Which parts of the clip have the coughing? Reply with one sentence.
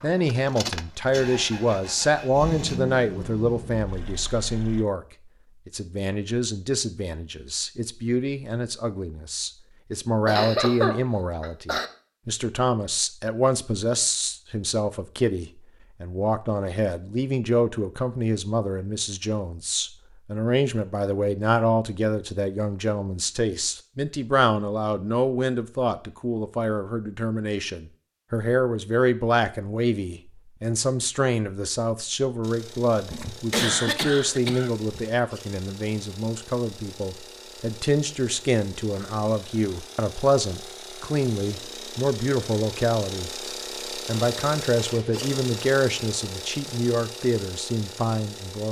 You can hear the coughing from 10.2 to 11.8 s and from 33.1 to 35.0 s.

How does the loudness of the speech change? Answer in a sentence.
The loudness of the speech stays about the same.